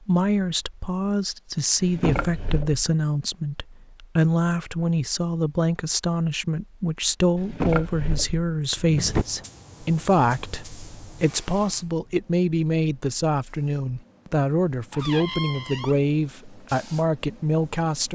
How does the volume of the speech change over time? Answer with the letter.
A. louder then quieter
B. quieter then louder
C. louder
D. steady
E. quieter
D.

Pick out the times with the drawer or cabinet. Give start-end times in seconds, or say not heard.
1.8-2.9, 7.3-9.2, 14.9-16.0.